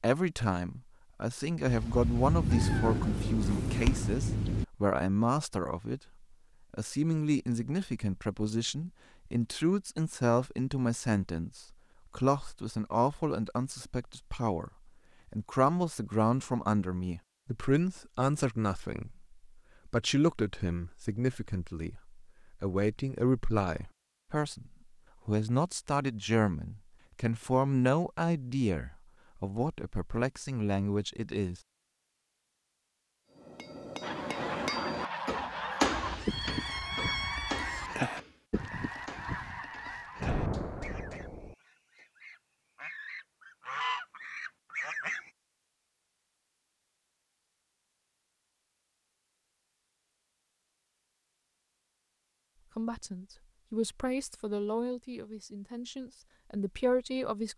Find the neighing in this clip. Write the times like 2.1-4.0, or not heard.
not heard.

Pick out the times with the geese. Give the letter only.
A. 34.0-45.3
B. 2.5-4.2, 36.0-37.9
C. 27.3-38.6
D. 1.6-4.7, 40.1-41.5
A.